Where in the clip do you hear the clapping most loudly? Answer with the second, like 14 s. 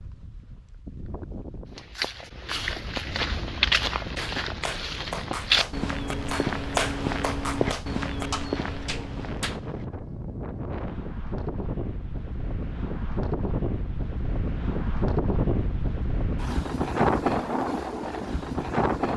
7 s.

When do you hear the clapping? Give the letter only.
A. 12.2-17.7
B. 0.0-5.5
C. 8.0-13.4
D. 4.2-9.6
D.